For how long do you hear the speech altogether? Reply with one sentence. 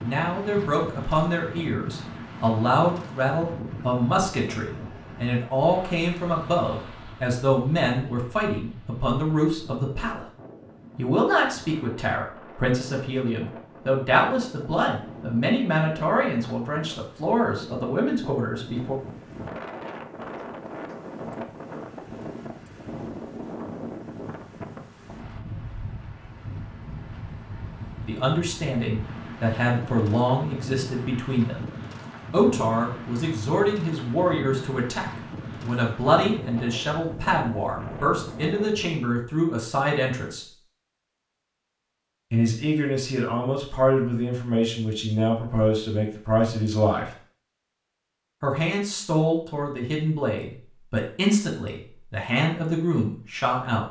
You can hear the speech for 40 seconds altogether.